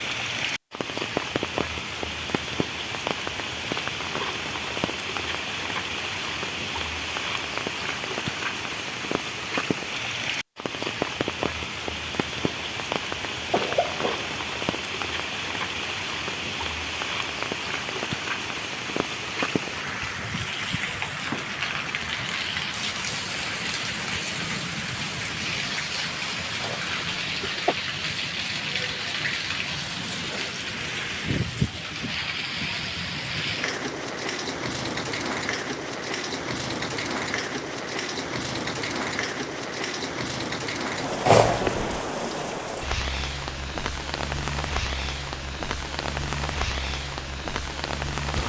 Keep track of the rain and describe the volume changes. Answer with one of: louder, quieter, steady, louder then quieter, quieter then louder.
steady.